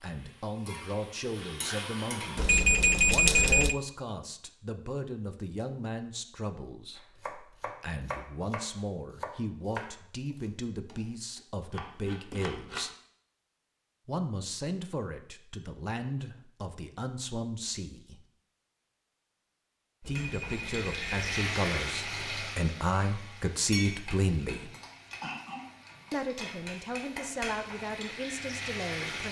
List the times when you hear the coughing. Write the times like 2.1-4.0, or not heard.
24.4-26.1.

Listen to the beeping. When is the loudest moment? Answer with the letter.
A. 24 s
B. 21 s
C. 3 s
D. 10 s
C.